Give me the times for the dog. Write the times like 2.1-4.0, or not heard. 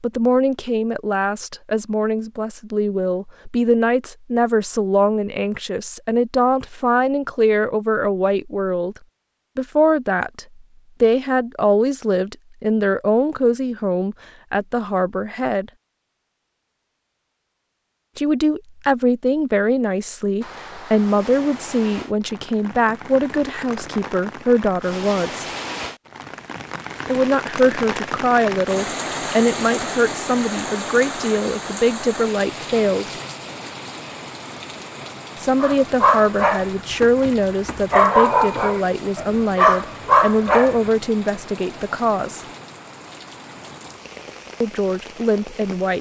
35.6-40.9.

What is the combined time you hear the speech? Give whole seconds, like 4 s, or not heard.
37 s.